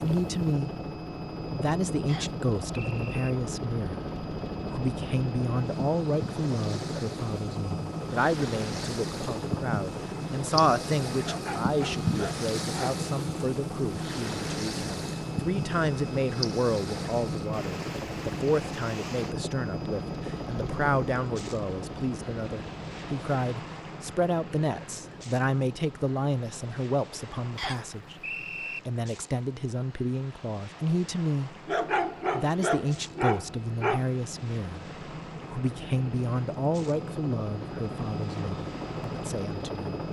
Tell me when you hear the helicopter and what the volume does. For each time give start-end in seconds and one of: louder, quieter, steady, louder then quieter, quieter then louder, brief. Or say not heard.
0.0-40.0 quieter then louder.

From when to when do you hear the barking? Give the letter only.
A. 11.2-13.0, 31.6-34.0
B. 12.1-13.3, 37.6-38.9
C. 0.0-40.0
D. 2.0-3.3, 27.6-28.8
A.